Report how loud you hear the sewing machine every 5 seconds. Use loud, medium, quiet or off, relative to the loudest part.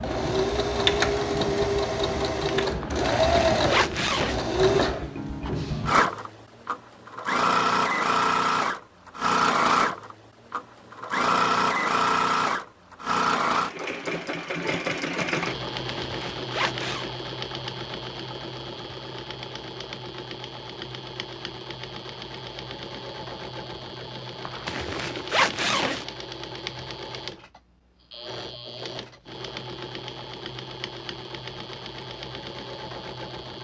loud, loud, loud, medium, quiet, quiet, quiet.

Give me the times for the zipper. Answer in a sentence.
The zipper can be heard from 2.8 to 4.4 s, from 15.8 to 17.1 s and from 24.4 to 26.1 s.